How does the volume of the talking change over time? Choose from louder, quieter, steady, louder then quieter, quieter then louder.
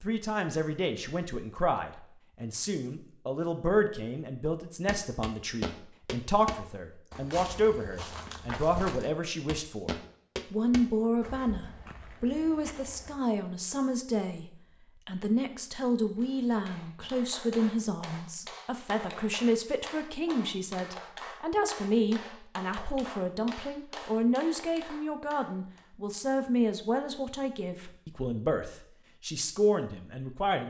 steady.